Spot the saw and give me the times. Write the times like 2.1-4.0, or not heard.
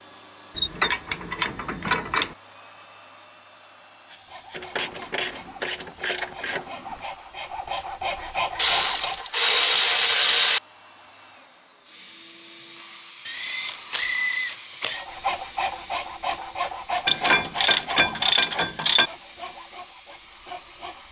4.1-9.4, 14.9-21.0.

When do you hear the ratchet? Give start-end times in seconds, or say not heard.
0.6-2.4, 4.5-6.7, 8.6-10.6, 13.2-15.1, 17.1-19.1.